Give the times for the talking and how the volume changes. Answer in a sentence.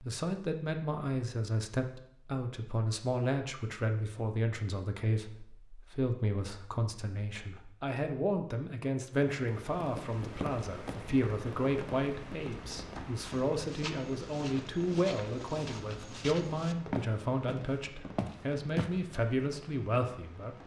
You can hear the talking from 0.0 to 20.6 s, at a steady volume.